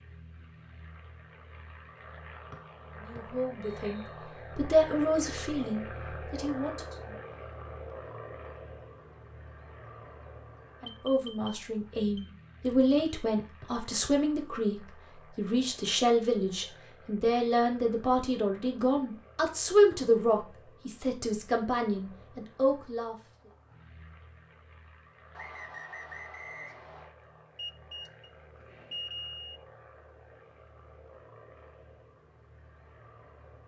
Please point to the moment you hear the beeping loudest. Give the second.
29 s.